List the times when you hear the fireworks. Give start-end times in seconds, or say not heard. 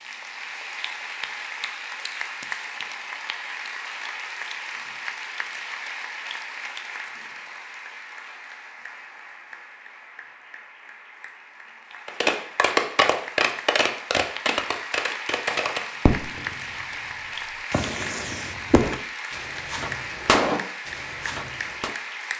12.1-16.6, 17.7-21.9.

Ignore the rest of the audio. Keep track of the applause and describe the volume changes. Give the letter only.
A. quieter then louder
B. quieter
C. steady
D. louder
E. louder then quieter
A.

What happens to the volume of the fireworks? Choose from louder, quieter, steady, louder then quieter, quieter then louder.
quieter then louder.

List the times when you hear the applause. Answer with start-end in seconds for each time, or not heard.
0.0-22.3.